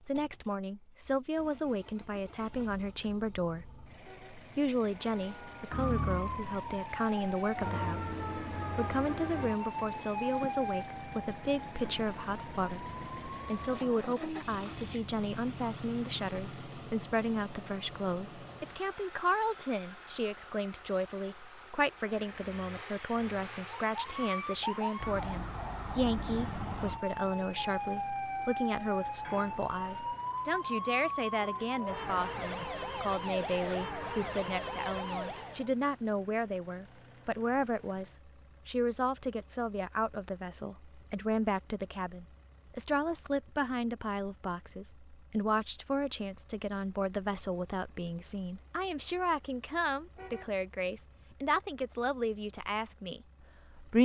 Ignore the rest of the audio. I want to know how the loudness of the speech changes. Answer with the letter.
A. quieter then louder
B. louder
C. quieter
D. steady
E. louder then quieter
D.